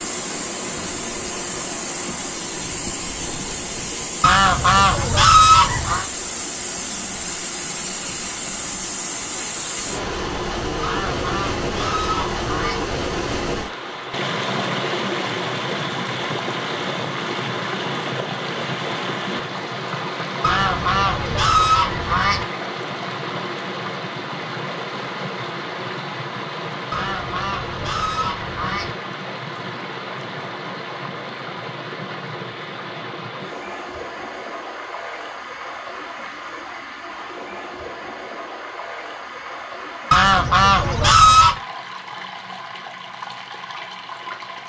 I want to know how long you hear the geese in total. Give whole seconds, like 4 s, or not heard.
9 s.